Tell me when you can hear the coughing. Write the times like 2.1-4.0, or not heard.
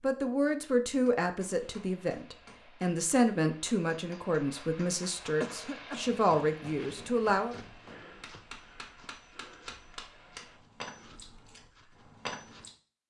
5.4-6.5.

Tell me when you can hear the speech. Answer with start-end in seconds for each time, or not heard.
0.0-7.5.